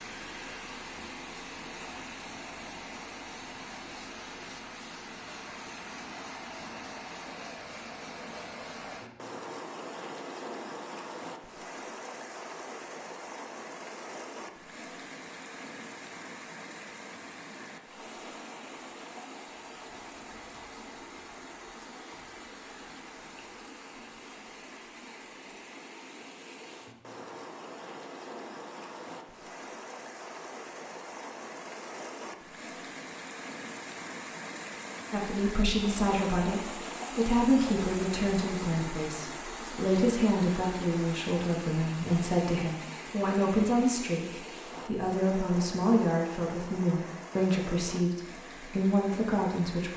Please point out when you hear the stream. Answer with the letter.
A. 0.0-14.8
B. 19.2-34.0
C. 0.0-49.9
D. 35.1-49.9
C.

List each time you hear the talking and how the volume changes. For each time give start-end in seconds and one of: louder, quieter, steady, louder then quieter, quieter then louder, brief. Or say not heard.
35.1-49.9 steady.